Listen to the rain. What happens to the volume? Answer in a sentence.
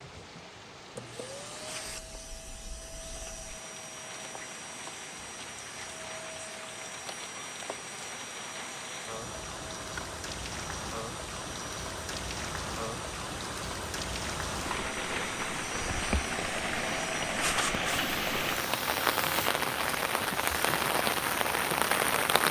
The volume of the rain goes up.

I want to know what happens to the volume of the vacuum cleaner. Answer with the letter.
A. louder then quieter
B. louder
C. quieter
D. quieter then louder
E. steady
B.